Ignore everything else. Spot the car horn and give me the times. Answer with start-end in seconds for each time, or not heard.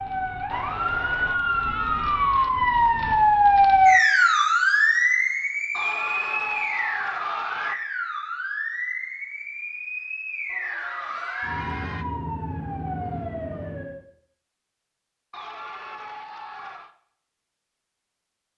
not heard.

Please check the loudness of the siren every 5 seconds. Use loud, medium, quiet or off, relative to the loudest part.
loud, medium, quiet, off.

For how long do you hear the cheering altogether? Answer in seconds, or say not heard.
7 s.